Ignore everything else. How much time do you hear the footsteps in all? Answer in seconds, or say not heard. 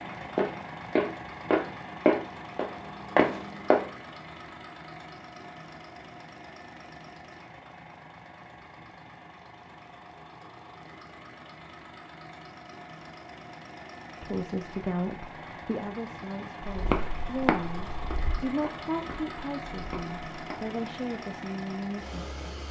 8 s.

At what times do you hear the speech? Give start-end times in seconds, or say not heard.
14.2-22.4.